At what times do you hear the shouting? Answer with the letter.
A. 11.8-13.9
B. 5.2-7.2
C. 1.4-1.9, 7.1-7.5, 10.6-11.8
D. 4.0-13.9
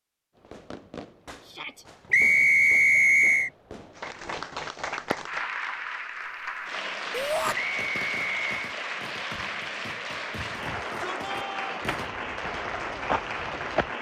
C.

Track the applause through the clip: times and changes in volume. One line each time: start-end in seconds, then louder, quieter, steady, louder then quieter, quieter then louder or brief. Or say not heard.
4.0-13.9 steady.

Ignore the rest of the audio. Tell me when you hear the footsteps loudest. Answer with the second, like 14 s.
13 s.